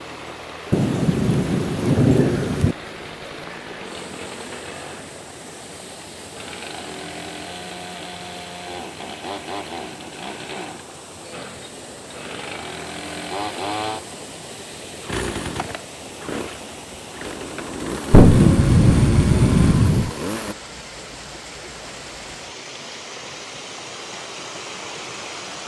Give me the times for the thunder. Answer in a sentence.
You can hear the thunder from 0.7 to 2.8 s and from 18.1 to 20.1 s.